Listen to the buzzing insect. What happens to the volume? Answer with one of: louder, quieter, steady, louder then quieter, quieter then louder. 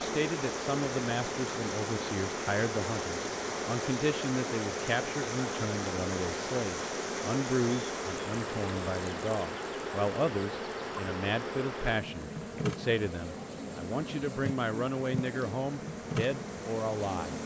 steady.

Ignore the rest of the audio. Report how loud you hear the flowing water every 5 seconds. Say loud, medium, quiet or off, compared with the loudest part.
loud, loud, medium, medium.